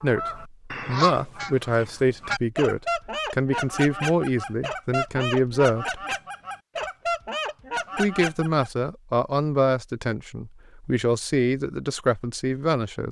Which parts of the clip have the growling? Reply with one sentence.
The growling can't be heard in this clip.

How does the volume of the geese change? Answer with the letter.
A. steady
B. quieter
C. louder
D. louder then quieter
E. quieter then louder
A.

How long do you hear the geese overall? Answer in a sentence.
You can hear the geese for 9 seconds altogether.